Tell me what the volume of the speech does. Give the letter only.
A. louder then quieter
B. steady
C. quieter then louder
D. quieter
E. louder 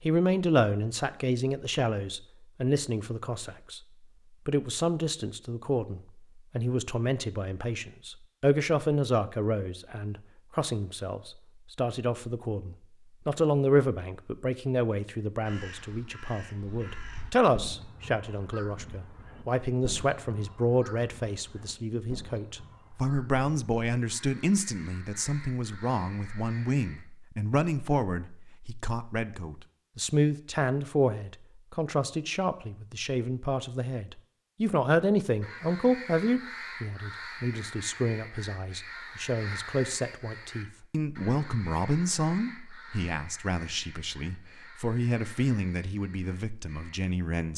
B.